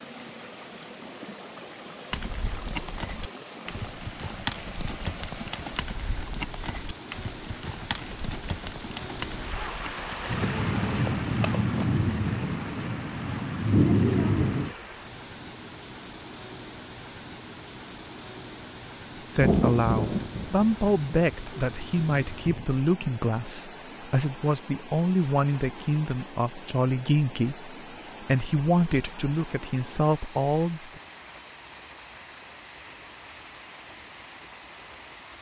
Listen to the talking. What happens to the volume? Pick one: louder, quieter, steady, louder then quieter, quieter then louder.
steady.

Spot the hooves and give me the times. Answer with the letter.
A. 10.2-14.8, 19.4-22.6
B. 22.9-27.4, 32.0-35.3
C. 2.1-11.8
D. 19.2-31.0
C.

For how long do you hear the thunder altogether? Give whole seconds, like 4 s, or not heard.
8 s.